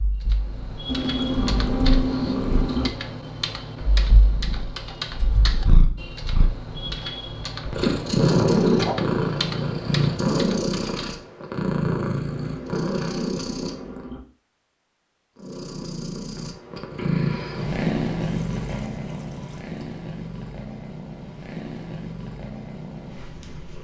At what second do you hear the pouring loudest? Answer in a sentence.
The loudest moment of the pouring is at 2 seconds.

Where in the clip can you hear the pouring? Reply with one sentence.
The pouring can be heard from 0.8 to 2.9 s, from 12.2 to 14.2 s and from 18.2 to 20.0 s.